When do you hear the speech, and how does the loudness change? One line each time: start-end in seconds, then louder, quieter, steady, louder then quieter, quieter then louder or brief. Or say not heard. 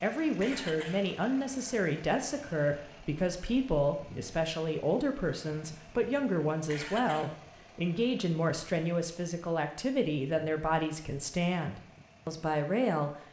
0.0-13.1 steady.